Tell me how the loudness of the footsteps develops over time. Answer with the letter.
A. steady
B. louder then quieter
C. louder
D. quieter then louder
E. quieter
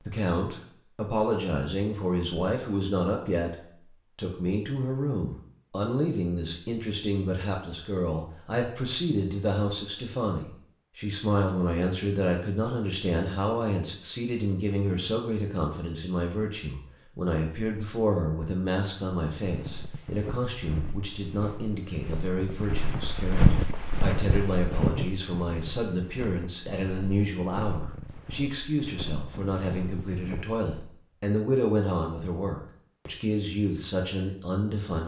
B.